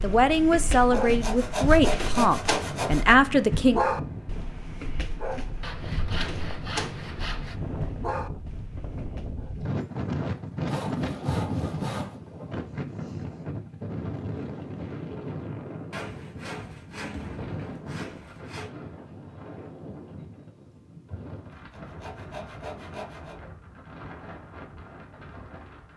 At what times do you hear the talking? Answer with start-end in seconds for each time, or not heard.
0.0-3.8.